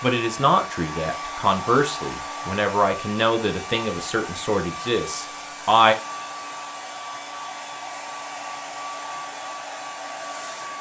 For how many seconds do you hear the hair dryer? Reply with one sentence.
You can hear the hair dryer for 11 seconds altogether.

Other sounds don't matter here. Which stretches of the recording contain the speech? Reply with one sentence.
The speech can be heard from 0.0 to 6.0 s.